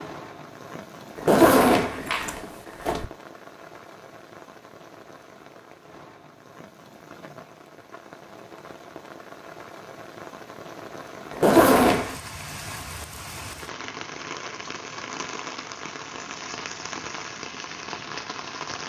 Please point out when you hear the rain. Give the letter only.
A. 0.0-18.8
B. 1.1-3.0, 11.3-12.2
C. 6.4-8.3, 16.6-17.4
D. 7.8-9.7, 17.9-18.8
A.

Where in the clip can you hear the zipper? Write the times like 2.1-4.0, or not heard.
1.1-3.0, 11.3-12.2.